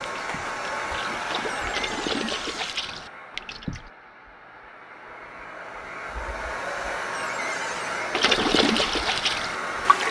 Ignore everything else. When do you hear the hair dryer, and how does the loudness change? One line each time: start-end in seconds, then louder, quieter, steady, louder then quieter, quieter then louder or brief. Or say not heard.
0.0-10.0 quieter then louder.